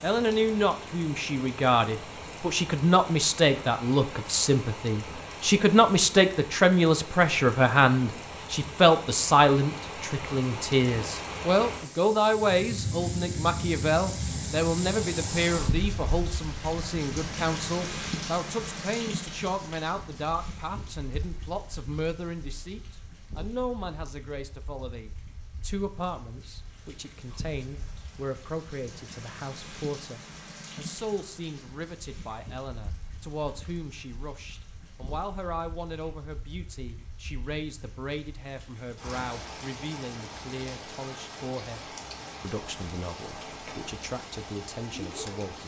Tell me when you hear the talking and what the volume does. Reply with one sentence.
You can hear the talking from 0.0 to 45.6 s, getting quieter.